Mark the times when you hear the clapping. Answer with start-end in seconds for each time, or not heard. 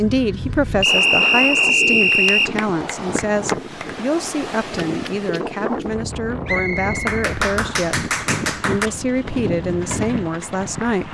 2.0-4.0, 7.0-8.9.